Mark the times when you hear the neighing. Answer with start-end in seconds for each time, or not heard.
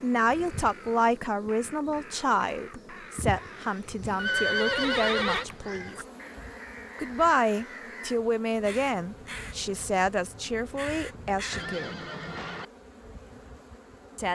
4.2-5.5, 11.5-12.7.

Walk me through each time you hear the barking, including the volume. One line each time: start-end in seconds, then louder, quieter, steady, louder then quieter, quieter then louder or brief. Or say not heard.
not heard.